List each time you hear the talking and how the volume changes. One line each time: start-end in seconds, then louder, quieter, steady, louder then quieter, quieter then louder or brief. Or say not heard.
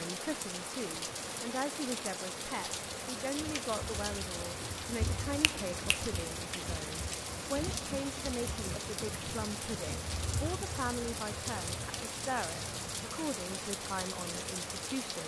0.0-15.2 steady.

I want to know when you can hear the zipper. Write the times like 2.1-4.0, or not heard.
not heard.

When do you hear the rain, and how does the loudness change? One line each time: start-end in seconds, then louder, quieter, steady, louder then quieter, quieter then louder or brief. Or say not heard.
0.0-15.2 steady.